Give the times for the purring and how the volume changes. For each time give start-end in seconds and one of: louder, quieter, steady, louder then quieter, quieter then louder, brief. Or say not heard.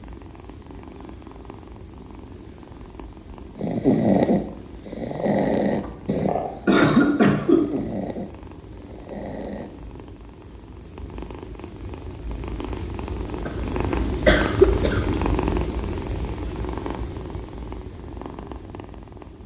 0.0-19.4 louder.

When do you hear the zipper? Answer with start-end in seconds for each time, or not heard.
not heard.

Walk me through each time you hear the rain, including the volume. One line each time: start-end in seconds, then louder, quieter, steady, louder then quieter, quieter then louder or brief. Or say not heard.
not heard.